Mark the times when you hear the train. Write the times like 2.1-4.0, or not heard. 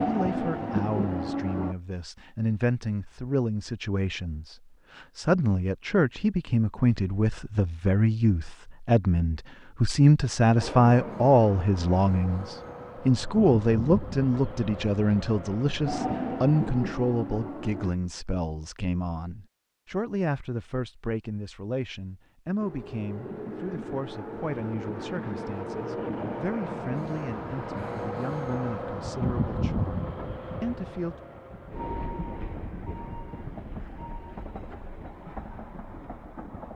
0.0-1.8, 10.6-17.9, 22.6-36.7.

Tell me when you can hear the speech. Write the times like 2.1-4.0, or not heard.
0.0-31.1.